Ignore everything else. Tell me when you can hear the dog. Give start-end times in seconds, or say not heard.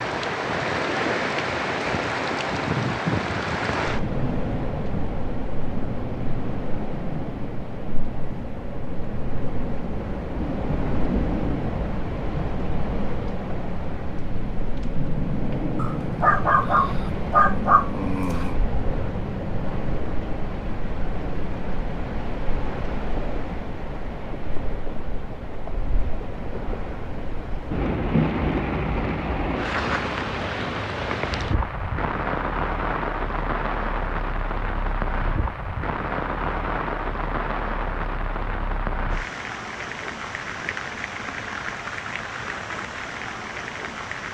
15.8-18.6.